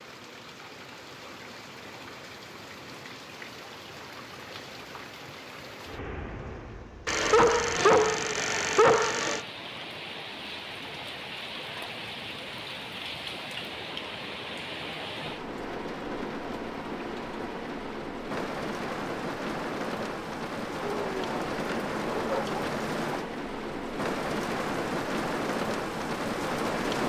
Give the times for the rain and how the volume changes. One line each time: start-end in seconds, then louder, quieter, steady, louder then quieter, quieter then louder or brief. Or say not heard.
0.0-27.0 louder.